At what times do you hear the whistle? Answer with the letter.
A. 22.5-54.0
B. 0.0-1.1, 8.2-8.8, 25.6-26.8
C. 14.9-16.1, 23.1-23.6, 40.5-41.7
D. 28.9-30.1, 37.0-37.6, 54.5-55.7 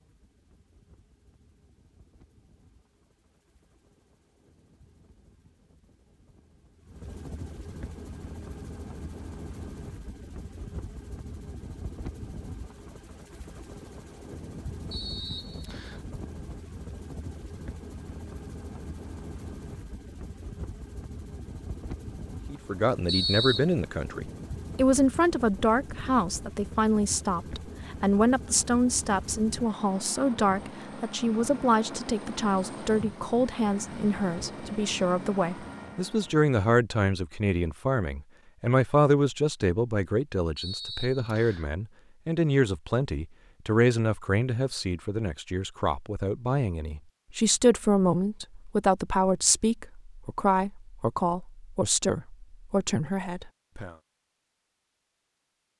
C.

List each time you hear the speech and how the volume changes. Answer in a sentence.
The speech can be heard from 22.5 to 54.0 s, at a steady volume.